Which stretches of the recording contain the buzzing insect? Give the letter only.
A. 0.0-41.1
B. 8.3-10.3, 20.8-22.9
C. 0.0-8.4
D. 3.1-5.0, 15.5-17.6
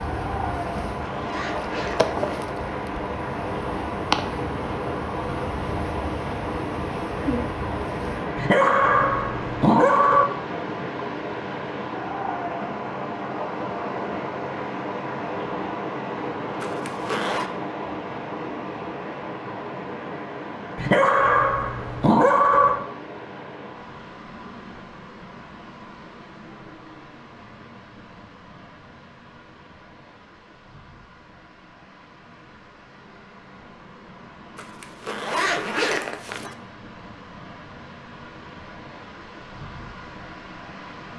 C.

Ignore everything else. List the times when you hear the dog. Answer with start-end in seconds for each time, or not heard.
8.3-10.3, 20.8-22.9.